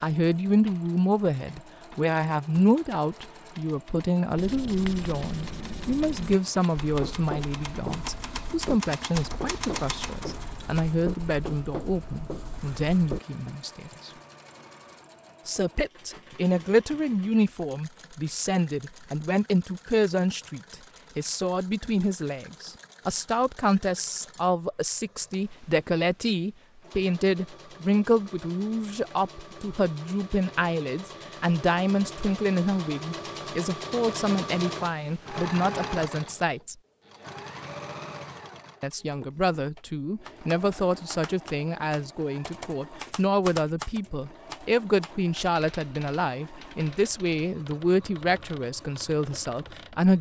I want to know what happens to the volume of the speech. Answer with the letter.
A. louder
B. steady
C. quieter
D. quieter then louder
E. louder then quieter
B.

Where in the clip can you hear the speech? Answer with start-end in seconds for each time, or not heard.
0.0-14.1, 15.4-36.8, 38.8-50.1.